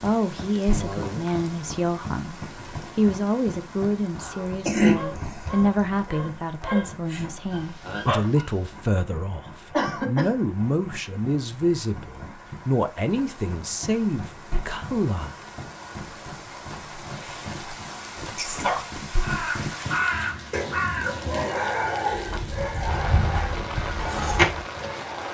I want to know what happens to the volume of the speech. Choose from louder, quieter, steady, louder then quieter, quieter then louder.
steady.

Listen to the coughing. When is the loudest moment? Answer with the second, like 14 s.
5 s.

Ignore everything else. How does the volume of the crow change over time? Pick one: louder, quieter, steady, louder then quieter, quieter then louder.
quieter.